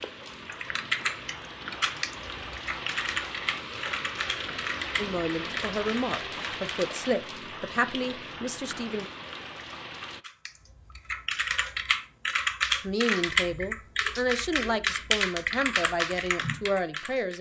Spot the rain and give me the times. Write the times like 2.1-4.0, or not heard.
0.0-10.2.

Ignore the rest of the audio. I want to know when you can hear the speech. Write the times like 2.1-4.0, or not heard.
5.0-9.1, 12.8-17.3.